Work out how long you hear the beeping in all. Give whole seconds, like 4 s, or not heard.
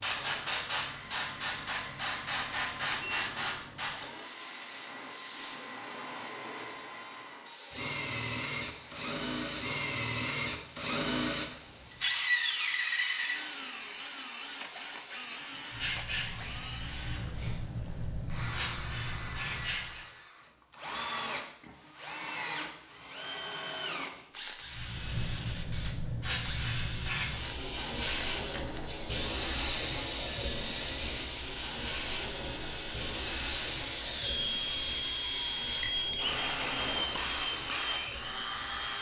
3 s.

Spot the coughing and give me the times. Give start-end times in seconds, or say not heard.
not heard.